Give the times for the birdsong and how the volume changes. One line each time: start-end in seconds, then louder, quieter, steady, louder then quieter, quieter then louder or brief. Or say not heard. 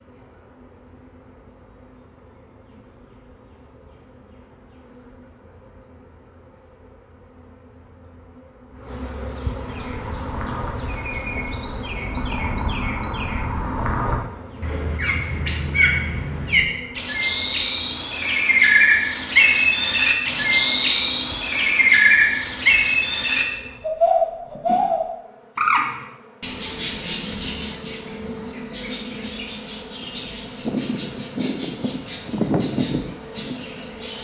9.7-34.1 louder then quieter.